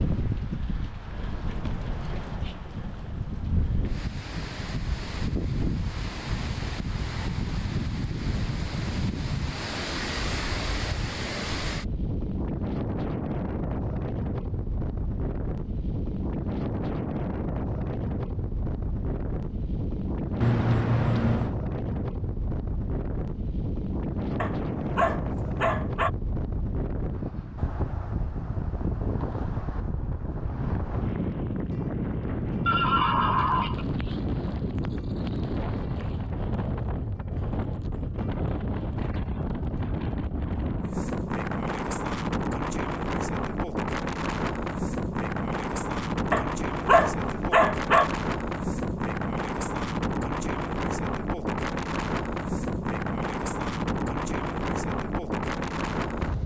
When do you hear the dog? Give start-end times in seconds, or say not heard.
24.4-26.1, 46.3-48.1.